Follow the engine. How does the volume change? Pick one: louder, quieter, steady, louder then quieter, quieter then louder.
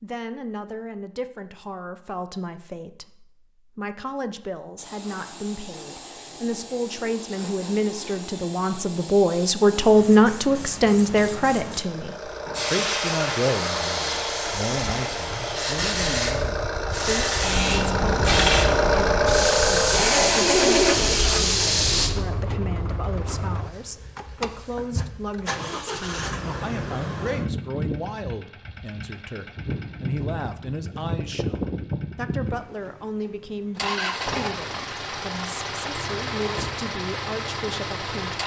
louder then quieter.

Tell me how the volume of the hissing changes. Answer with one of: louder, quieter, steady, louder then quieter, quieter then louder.
louder.